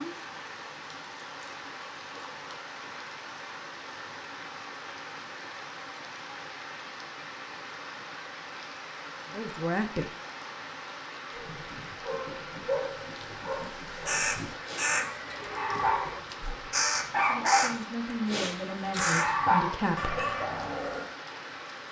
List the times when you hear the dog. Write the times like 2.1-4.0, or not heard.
11.3-21.1.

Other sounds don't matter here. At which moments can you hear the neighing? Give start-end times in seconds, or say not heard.
14.8-16.4.